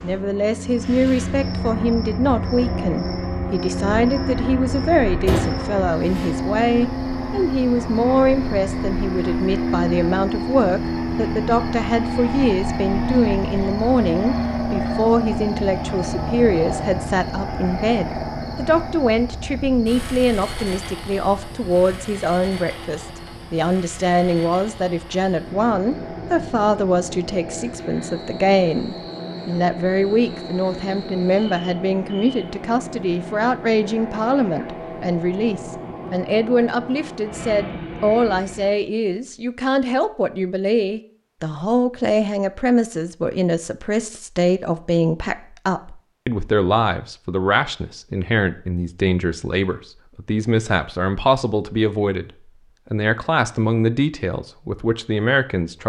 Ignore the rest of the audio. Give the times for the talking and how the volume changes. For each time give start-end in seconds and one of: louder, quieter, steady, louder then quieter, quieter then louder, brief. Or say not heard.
0.0-52.3 steady
52.9-55.8 brief.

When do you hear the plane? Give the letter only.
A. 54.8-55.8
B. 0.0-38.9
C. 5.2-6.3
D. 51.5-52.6
B.